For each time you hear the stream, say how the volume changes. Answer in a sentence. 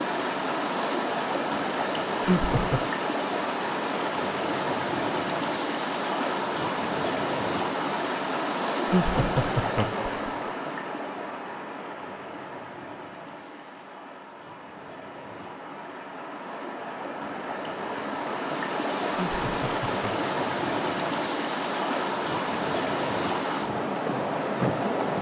You can hear the stream from 0.0 to 25.1 s, getting quieter then louder.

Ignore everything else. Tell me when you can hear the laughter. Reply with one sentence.
The laughter can be heard from 2.2 to 2.9 s, from 8.8 to 10.5 s and from 19.1 to 20.2 s.